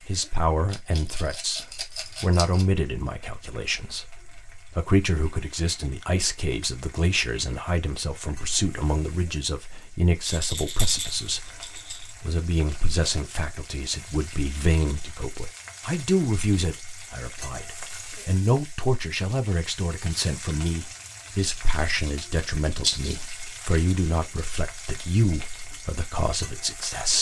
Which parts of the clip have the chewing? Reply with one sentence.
The chewing can't be heard in this clip.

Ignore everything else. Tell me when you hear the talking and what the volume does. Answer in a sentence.
You can hear the talking from 0.1 to 27.1 s, at a steady volume.